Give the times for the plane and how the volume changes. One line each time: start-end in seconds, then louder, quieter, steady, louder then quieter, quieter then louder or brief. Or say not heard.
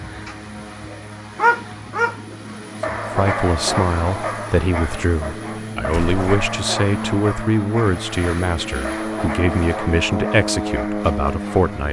0.0-11.8 louder.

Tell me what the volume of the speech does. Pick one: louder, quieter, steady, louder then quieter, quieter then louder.
steady.